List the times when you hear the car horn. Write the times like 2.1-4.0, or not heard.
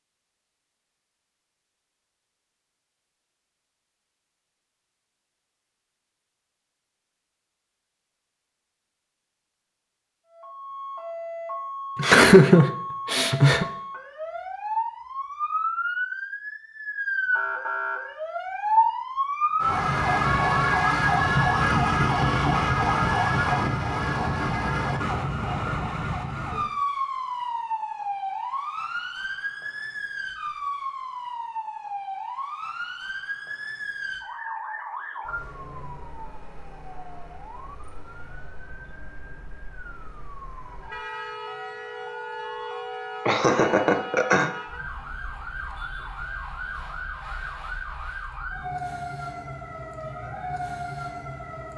not heard.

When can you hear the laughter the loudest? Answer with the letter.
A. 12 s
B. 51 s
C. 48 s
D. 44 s
A.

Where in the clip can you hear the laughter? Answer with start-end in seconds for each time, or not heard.
11.9-13.7, 43.2-44.5.